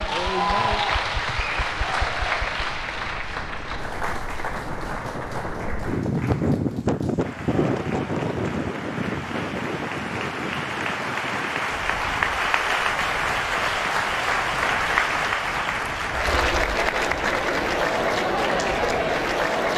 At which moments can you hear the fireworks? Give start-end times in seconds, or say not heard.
not heard.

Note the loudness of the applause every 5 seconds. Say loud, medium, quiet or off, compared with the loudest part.
loud, quiet, loud, loud.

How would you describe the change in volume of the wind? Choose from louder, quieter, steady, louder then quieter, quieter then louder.
louder then quieter.